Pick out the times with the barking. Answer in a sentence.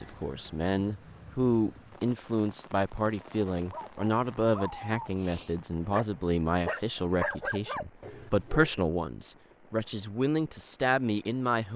You can hear the barking from 3.2 to 8.7 s.